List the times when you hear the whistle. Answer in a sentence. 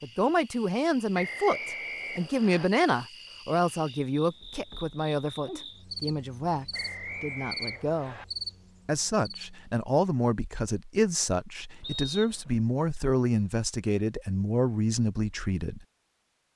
You can hear the whistle from 1.1 to 2.7 s, from 6.7 to 8.2 s and from 11.8 to 12.6 s.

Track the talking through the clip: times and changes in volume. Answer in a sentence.
The talking can be heard from 0.0 to 8.2 s, getting quieter; and from 8.8 to 15.8 s, at a steady volume.